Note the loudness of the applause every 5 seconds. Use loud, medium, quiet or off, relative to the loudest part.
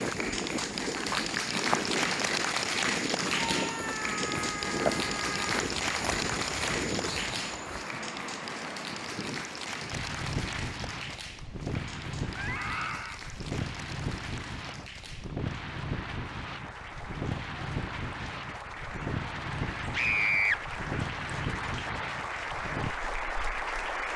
loud, loud, medium, medium, loud.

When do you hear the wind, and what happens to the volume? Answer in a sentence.
You can hear the wind from 0.0 to 24.1 s, at a steady volume.